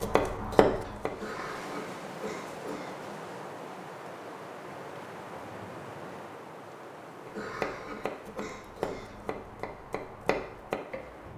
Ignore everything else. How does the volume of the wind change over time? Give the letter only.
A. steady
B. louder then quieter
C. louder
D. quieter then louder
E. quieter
E.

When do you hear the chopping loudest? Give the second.
1 s.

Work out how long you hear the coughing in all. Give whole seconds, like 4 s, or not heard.
4 s.